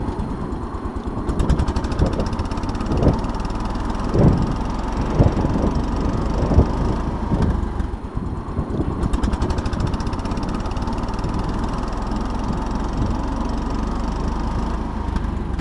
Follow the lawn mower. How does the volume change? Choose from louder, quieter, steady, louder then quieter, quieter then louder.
steady.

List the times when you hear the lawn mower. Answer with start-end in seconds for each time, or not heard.
0.0-15.5.